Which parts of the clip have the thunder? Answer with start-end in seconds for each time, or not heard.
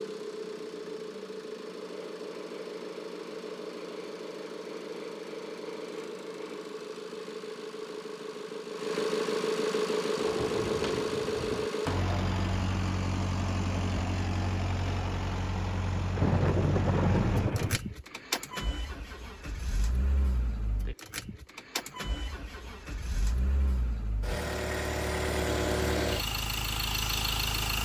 10.2-11.7, 16.1-17.8.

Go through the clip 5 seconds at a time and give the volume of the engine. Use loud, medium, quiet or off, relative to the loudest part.
medium, loud, loud, medium, medium, loud.